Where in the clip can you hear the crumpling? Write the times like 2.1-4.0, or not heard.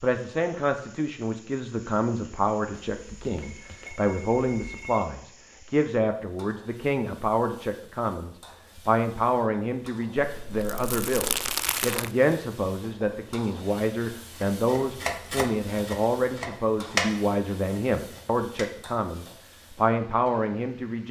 10.2-12.1.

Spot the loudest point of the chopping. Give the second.
17 s.